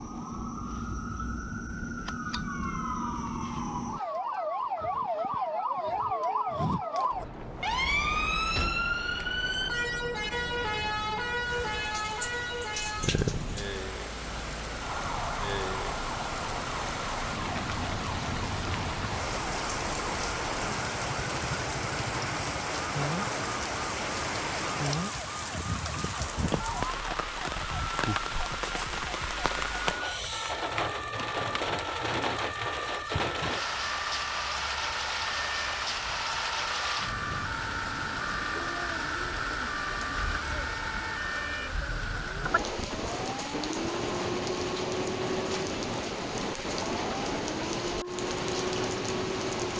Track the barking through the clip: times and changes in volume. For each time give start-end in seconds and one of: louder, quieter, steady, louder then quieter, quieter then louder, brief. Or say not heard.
not heard.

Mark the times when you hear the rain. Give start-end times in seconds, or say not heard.
11.4-49.7.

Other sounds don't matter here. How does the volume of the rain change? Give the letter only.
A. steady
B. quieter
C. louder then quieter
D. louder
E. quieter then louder
A.